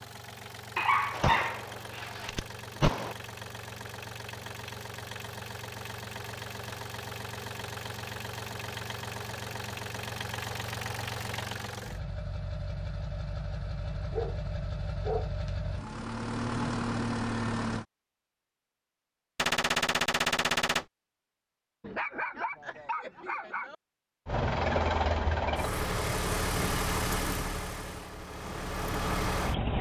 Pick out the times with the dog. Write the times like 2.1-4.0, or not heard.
0.8-2.4, 13.9-15.6, 21.8-23.8.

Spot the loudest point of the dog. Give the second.
1 s.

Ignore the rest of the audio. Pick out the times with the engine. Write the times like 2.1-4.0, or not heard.
0.0-17.9, 24.2-29.7.